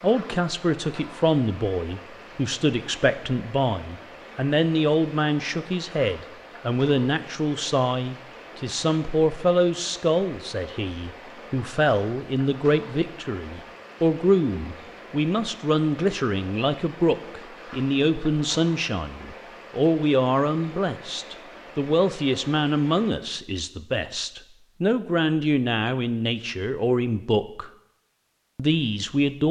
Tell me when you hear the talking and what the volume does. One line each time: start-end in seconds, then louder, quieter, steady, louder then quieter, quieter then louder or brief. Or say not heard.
0.0-27.7 steady
28.6-29.4 brief.